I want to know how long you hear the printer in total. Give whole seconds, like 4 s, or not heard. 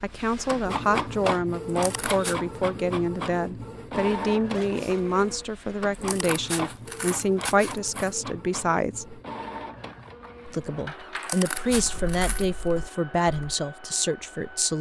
15 s.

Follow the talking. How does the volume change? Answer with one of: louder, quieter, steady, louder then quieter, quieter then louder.
steady.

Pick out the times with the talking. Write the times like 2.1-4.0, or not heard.
0.0-9.2, 10.4-14.7.